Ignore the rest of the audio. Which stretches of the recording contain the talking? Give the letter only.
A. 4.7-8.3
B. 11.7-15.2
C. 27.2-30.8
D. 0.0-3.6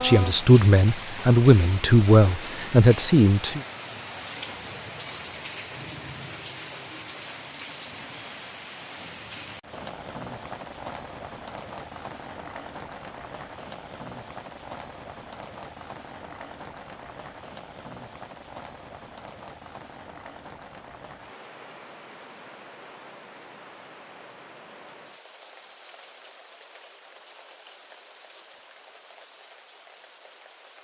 D.